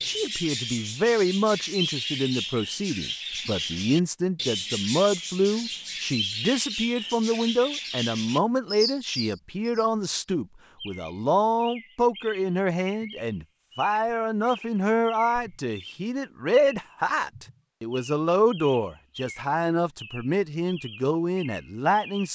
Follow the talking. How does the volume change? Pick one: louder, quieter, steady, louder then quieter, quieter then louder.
steady.